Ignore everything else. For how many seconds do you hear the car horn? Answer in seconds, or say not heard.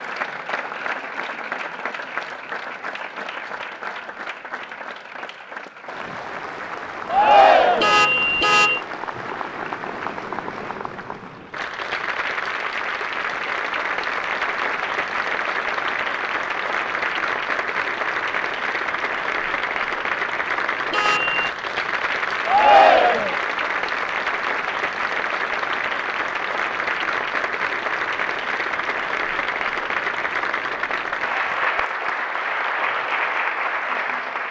2 s.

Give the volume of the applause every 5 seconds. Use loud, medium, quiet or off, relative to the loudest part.
medium, medium, loud, loud, loud, loud, loud.